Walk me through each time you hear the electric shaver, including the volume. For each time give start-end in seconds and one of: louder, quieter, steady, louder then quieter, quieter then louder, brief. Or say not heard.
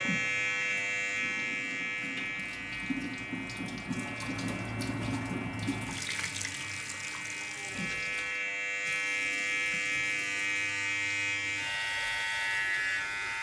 0.0-13.3 quieter then louder.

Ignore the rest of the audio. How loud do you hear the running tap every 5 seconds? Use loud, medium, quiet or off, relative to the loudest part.
loud, loud, quiet.